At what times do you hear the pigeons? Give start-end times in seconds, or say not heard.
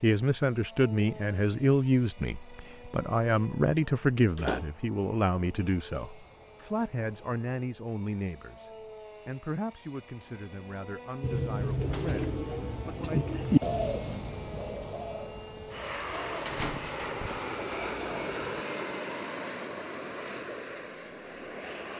11.2-18.6.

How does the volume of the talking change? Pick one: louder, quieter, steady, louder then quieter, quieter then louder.
quieter.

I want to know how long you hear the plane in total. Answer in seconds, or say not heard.
22 s.